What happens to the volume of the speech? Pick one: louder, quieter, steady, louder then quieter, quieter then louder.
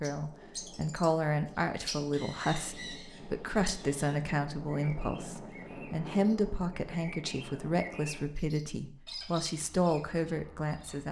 steady.